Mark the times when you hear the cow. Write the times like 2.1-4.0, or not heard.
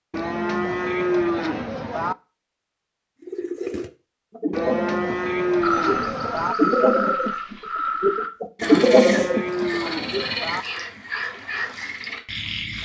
0.1-2.1, 4.5-6.5, 8.6-10.7.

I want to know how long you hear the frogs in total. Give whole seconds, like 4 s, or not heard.
7 s.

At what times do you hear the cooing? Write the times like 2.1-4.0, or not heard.
3.2-10.2.